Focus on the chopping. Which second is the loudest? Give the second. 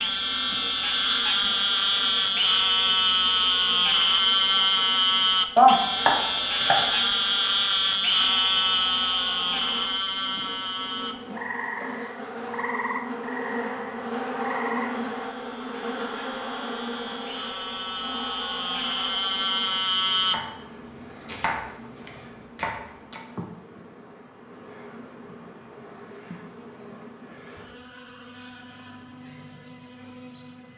6 s.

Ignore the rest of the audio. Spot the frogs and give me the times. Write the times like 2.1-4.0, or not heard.
0.0-20.4.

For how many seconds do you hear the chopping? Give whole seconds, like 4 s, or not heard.
4 s.